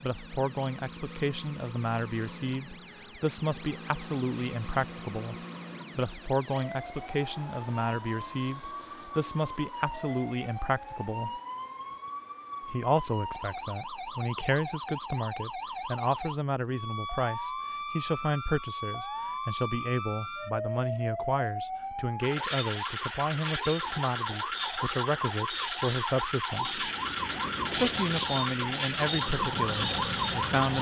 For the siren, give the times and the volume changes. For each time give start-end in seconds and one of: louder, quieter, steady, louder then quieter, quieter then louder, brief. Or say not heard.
0.0-30.7 louder.